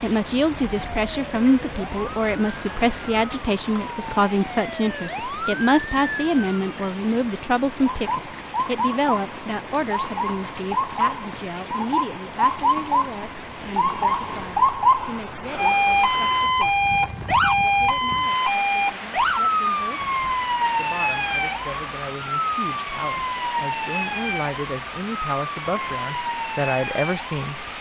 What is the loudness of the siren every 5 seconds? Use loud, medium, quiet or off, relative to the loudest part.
quiet, medium, loud, loud, medium, medium.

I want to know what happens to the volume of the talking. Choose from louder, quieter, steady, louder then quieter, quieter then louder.
quieter then louder.